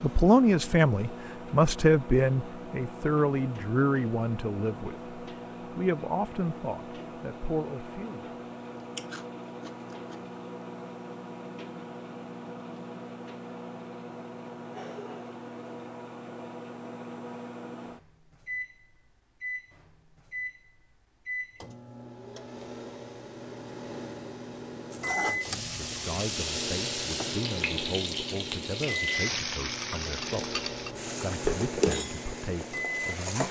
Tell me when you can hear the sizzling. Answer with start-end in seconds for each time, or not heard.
24.9-33.4.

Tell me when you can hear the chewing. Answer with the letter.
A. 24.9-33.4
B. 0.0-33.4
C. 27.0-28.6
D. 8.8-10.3
D.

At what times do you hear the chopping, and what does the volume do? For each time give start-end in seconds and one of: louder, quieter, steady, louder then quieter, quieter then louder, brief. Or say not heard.
not heard.